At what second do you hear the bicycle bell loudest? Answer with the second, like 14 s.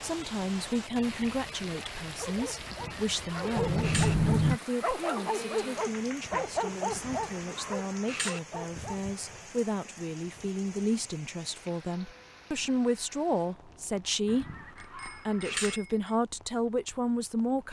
4 s.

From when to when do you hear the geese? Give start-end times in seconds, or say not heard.
2.6-4.2, 6.9-8.4, 14.2-15.8.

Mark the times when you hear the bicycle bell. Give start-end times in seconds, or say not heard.
3.5-4.6, 14.8-16.1.